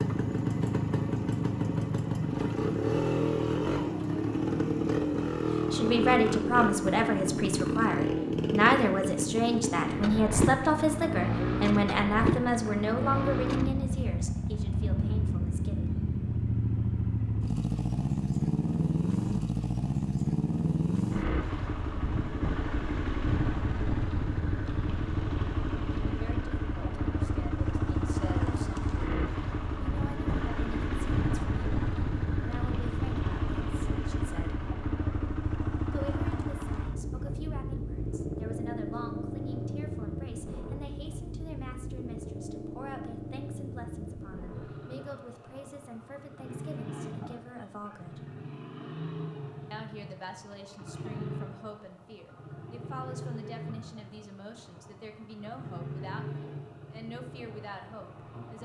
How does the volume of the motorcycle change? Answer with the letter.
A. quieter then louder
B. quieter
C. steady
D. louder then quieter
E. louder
B.